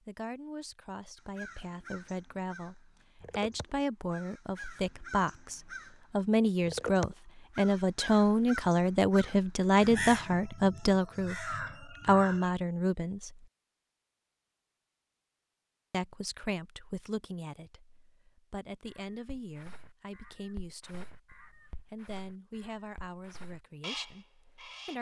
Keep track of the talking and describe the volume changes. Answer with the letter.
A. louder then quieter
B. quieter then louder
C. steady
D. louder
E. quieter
A.